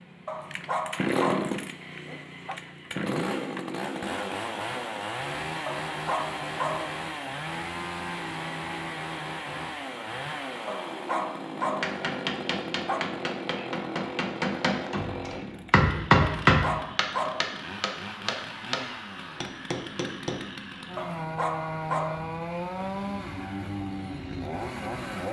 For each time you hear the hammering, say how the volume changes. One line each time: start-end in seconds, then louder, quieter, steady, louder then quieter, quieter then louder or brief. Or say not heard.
11.6-20.4 louder then quieter.